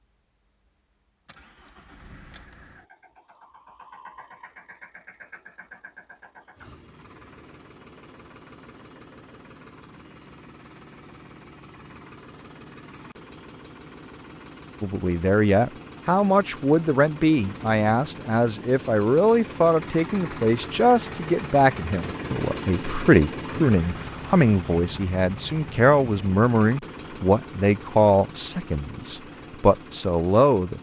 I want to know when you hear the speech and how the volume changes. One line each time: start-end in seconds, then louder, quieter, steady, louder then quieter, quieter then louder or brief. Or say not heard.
14.8-30.7 steady.